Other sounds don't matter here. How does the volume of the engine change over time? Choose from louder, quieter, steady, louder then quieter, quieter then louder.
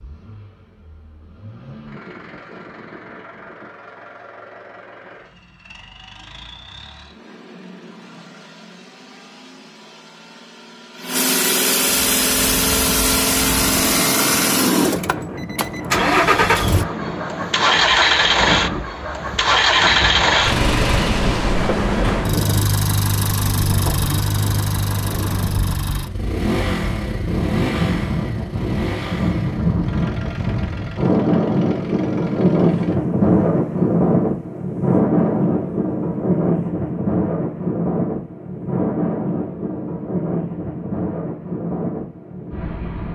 louder then quieter.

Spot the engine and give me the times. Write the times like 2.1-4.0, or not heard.
0.0-33.0.